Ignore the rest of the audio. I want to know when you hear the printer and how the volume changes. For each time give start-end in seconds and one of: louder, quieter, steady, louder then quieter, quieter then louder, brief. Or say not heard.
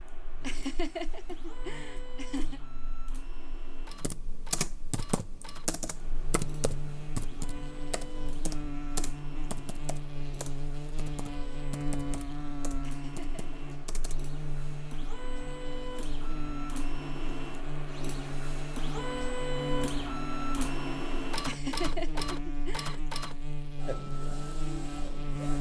0.0-25.5 louder.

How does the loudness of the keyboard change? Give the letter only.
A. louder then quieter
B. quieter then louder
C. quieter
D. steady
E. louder
C.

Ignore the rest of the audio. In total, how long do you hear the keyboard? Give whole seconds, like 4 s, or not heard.
10 s.